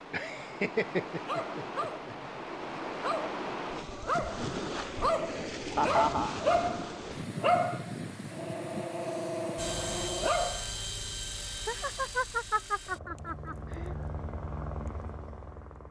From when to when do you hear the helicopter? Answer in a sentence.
You can hear the helicopter from 9.6 to 15.8 s.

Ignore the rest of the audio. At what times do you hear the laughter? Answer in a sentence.
The laughter can be heard from 0.1 to 2.1 s, from 5.8 to 6.3 s and from 11.7 to 13.9 s.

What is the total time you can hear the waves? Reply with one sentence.
You can hear the waves for 10 seconds altogether.